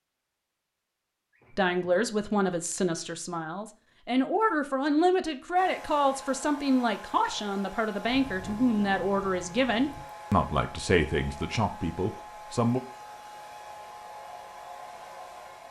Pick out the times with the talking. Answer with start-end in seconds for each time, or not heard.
1.6-12.8.